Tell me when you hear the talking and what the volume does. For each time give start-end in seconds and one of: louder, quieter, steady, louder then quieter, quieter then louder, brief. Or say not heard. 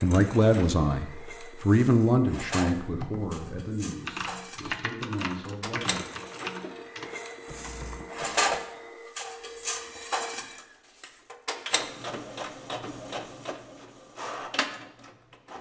0.0-6.0 quieter.